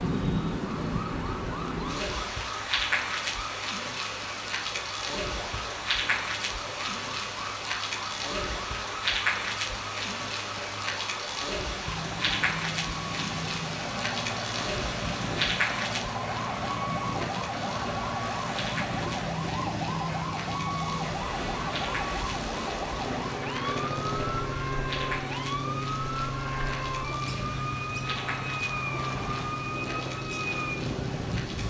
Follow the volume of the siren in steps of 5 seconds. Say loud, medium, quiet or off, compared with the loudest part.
medium, medium, medium, loud, loud, loud, loud.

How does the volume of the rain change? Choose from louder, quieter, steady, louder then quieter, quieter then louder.
quieter.